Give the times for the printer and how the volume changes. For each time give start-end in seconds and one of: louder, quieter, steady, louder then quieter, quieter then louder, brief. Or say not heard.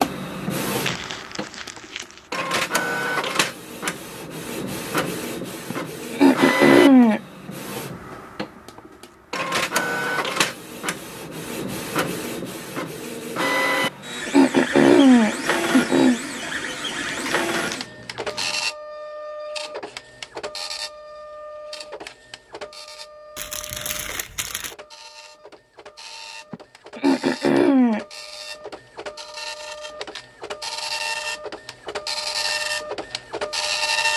0.0-34.1 quieter then louder.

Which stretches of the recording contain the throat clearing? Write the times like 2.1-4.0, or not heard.
5.7-7.2, 13.8-16.2, 26.5-28.1.